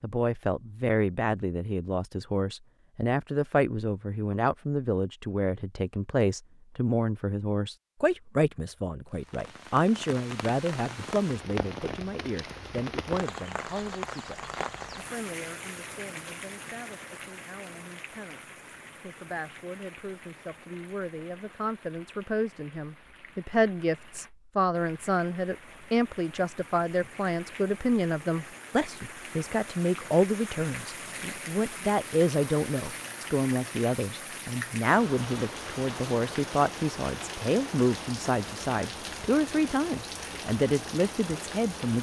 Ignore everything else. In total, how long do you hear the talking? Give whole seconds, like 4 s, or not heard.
42 s.